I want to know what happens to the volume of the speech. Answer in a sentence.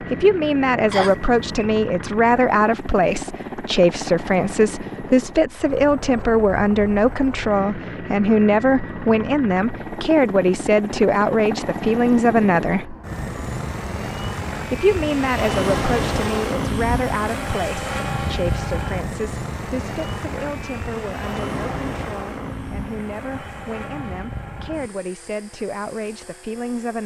The loudness of the speech goes down.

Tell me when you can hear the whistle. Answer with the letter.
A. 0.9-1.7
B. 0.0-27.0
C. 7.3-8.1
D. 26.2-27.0
A.